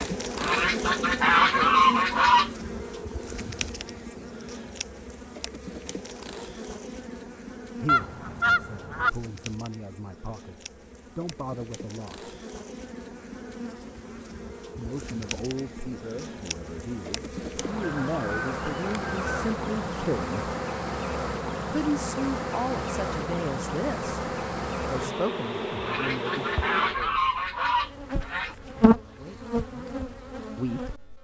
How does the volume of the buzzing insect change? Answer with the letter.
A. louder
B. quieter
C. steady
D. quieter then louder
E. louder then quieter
D.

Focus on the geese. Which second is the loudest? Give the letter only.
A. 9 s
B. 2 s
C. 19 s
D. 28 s
B.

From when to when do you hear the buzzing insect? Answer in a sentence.
The buzzing insect can be heard from 0.0 to 31.0 s.